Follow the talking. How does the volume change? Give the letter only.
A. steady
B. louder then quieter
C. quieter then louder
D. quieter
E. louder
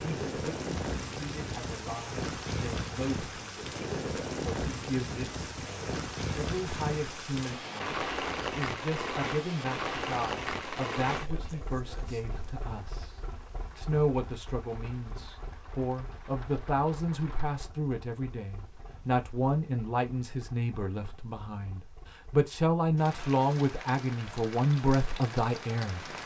E.